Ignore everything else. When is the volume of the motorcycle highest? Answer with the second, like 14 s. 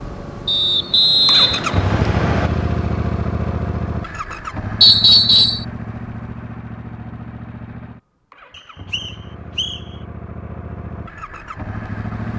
2 s.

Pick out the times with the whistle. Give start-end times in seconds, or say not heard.
0.5-2.5, 4.8-5.7, 8.5-9.8.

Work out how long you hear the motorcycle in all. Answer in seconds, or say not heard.
12 s.